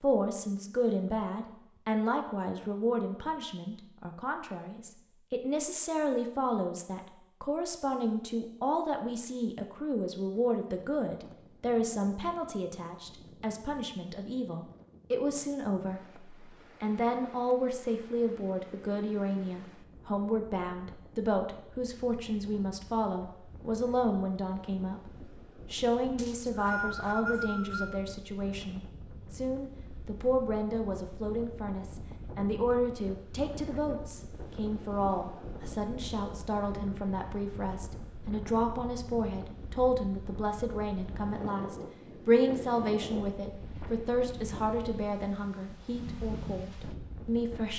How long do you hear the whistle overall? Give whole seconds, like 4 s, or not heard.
2 s.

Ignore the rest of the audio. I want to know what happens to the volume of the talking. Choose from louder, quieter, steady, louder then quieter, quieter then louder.
steady.